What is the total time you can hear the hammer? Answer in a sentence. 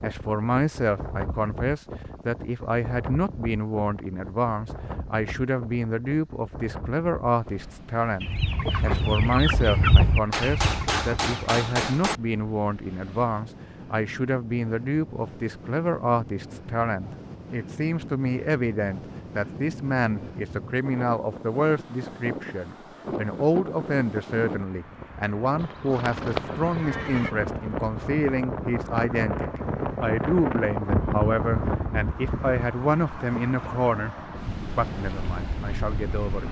The hammer can be heard for 2 seconds in total.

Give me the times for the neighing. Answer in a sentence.
You can hear the neighing from 25.6 to 27.3 s.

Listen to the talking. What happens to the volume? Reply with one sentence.
The loudness of the talking stays about the same.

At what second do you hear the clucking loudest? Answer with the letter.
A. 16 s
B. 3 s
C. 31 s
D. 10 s
D.